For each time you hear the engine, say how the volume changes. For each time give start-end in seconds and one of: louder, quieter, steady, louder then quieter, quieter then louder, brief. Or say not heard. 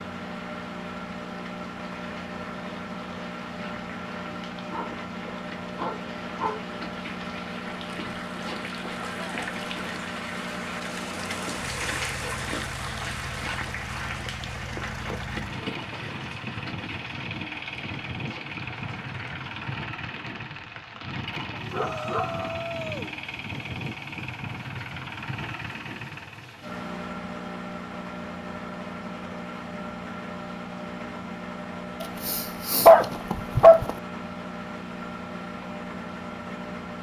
0.0-36.9 steady.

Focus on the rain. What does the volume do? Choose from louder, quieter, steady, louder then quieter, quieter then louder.
louder then quieter.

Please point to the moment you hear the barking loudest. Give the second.
33 s.